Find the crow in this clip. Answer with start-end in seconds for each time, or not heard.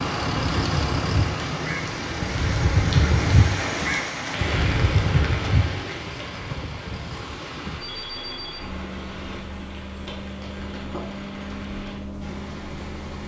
0.2-5.9.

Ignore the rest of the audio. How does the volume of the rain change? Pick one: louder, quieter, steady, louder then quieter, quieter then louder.
quieter.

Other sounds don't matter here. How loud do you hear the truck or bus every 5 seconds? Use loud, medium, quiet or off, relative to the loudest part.
loud, medium, medium.